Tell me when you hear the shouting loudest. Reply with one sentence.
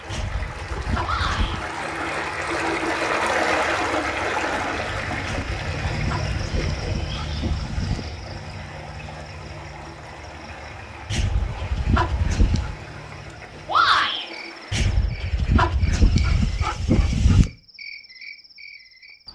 The loudest moment of the shouting is at 14 seconds.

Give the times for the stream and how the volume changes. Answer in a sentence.
You can hear the stream from 0.0 to 15.1 s, getting quieter.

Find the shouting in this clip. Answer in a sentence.
You can hear the shouting from 1.0 to 1.6 s and from 13.7 to 14.2 s.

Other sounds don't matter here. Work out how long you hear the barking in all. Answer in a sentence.
You can hear the barking for 9 seconds altogether.